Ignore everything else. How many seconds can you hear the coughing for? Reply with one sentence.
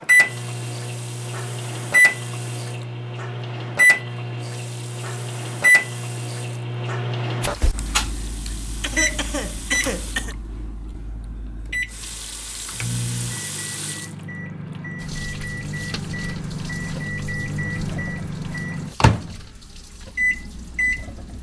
You can hear the coughing for 2 seconds altogether.